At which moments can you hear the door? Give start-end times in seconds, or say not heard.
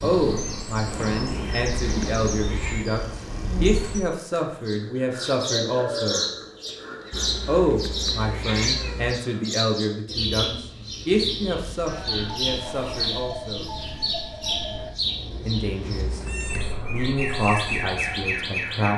not heard.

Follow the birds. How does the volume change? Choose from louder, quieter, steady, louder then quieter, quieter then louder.
steady.